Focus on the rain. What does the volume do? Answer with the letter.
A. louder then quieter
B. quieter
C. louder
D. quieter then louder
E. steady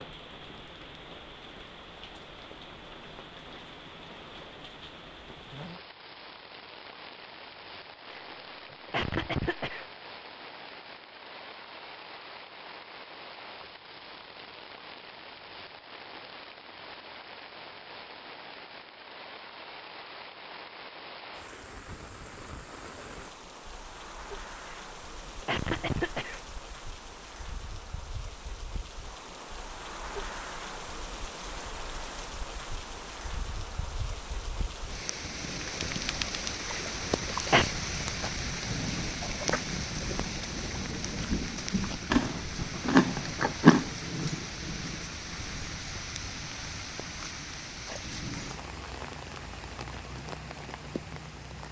C.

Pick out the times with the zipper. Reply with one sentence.
You can't hear the zipper here.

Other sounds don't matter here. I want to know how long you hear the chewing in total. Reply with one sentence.
You can hear the chewing for 2 seconds altogether.